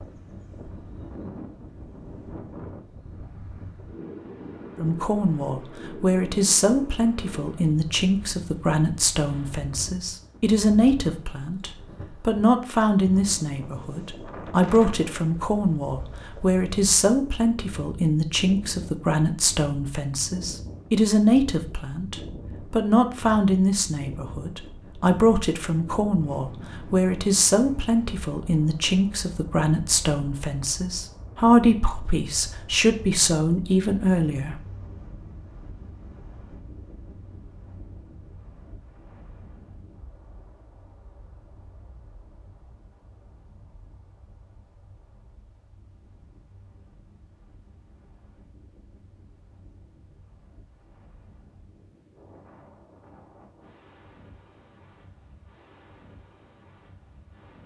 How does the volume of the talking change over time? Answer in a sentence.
The volume of the talking stays about the same.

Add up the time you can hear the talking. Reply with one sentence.
You can hear the talking for 30 seconds altogether.